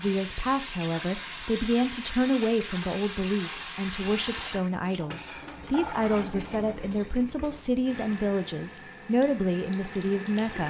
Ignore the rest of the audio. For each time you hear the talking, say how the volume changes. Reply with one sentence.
You can hear the talking from 0.0 to 10.6 s, at a steady volume.